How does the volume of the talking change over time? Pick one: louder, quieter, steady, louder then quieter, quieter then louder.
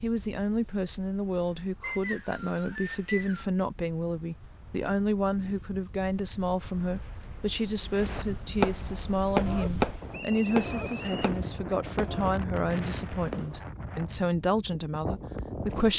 steady.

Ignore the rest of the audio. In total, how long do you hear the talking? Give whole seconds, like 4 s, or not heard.
16 s.